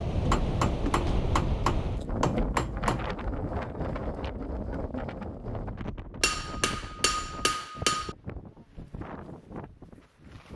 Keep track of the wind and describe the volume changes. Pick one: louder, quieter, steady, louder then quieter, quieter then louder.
quieter.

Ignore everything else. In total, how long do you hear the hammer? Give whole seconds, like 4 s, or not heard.
5 s.